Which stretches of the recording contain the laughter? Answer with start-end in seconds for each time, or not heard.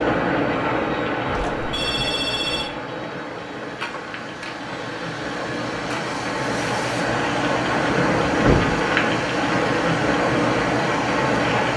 not heard.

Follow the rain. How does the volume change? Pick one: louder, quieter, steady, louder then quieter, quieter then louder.
quieter then louder.